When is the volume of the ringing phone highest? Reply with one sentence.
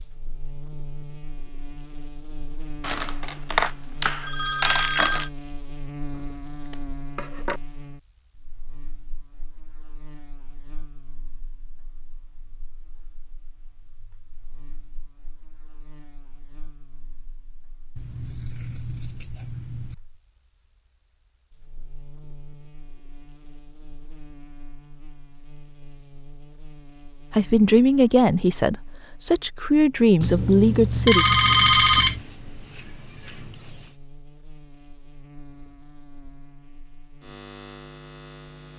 The volume of the ringing phone peaks at 32 seconds.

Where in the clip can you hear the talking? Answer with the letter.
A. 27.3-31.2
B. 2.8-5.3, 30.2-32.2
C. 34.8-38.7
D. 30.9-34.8
A.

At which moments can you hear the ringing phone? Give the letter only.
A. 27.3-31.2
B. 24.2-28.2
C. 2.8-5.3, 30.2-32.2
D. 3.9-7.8
C.